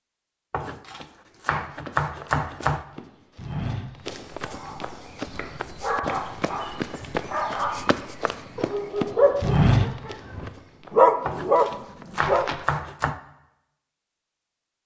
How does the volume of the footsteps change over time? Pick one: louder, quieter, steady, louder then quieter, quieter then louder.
louder then quieter.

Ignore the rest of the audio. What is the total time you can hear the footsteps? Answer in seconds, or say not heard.
11 s.